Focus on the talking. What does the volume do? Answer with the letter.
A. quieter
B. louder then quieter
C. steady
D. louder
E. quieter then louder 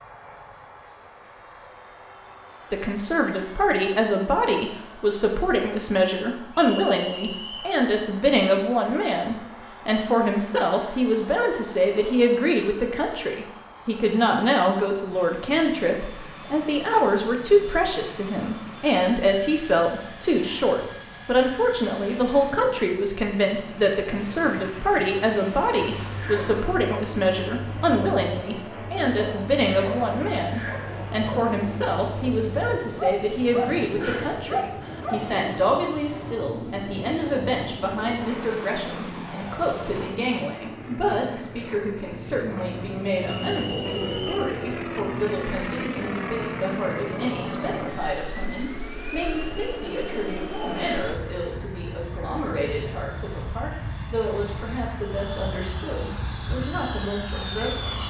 A.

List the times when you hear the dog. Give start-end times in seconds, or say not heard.
26.0-35.2.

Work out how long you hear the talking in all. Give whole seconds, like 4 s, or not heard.
55 s.